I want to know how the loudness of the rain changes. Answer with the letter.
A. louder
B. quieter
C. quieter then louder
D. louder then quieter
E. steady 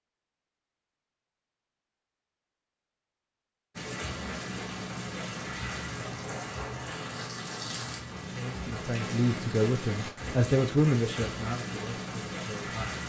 E.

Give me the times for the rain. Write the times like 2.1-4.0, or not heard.
3.8-13.0.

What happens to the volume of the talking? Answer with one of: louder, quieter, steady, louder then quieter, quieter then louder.
louder then quieter.